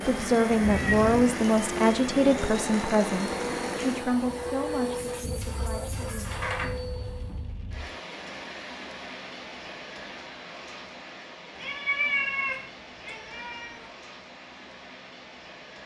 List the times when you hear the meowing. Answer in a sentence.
The meowing can be heard from 0.6 to 1.3 s, from 6.0 to 6.7 s and from 11.6 to 13.8 s.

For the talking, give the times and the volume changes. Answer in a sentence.
The talking can be heard from 0.0 to 6.2 s, getting quieter.